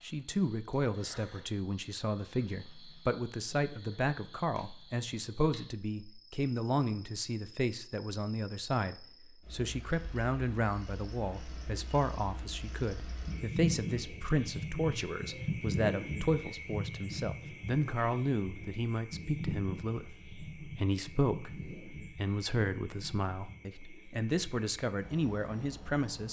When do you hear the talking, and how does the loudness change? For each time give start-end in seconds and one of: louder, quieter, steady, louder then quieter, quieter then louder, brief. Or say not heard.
0.0-26.2 steady.